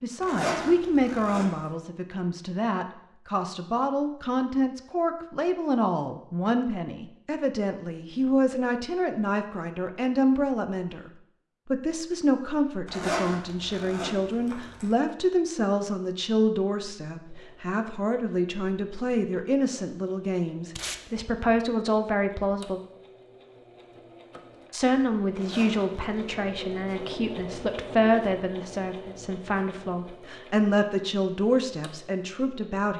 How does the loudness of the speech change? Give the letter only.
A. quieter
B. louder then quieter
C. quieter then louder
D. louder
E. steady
E.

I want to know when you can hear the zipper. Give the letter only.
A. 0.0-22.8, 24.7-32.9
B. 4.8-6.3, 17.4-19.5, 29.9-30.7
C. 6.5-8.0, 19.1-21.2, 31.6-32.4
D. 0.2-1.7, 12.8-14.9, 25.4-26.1
D.